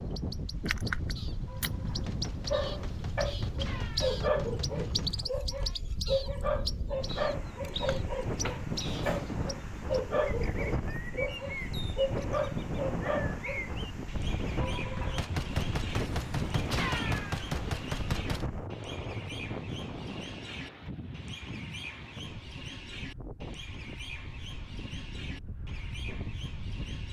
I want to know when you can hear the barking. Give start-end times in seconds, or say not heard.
2.5-13.7.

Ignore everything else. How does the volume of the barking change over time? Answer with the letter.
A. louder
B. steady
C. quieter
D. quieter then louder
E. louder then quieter
B.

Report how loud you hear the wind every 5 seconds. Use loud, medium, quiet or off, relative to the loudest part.
loud, loud, loud, loud, medium, medium.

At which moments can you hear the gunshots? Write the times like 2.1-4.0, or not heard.
1.4-5.2, 14.6-18.5.